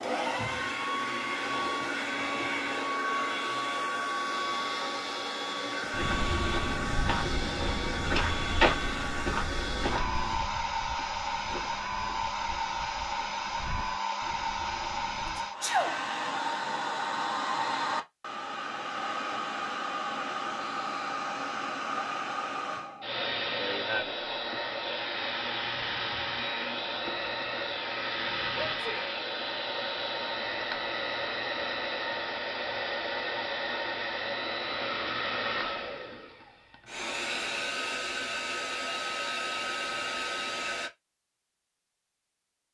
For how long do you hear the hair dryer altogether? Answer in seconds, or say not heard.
41 s.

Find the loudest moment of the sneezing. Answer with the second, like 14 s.
16 s.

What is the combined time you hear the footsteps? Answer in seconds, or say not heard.
10 s.